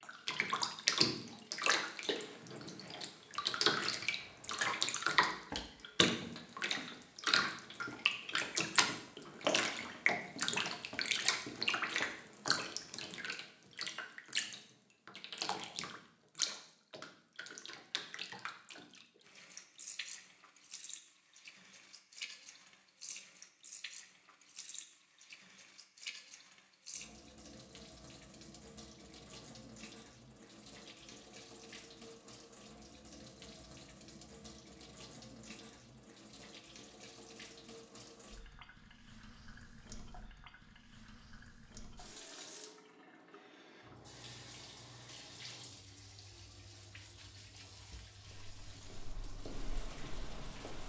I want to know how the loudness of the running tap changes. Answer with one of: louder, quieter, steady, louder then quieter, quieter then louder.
quieter.